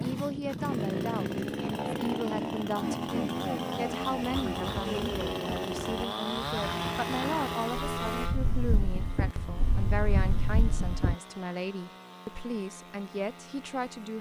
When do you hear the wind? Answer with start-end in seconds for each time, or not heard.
0.0-11.2.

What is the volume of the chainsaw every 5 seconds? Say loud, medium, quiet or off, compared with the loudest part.
loud, loud, quiet.